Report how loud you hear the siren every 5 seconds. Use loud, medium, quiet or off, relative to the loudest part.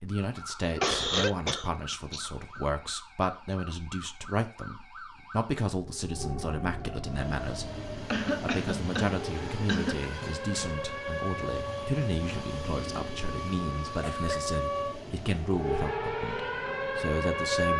quiet, medium, medium, loud.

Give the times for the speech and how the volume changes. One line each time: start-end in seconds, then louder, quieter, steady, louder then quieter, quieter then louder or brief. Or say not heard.
0.0-17.7 steady.